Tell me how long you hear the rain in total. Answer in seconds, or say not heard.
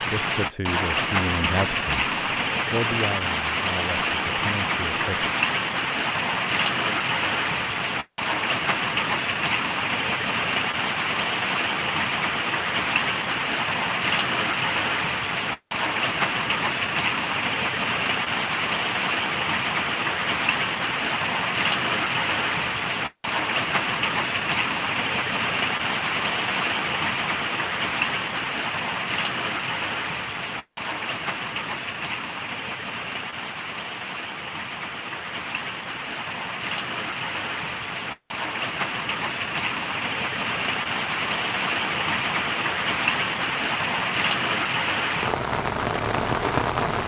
47 s.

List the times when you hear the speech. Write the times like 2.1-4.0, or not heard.
0.0-5.3.